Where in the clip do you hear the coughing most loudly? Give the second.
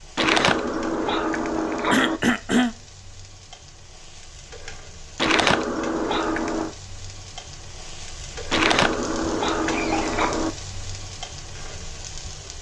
2 s.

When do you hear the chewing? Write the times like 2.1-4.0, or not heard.
0.1-2.2, 5.2-6.8, 8.5-10.5.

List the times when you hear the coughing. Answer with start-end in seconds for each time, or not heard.
1.9-2.8, 9.7-10.2.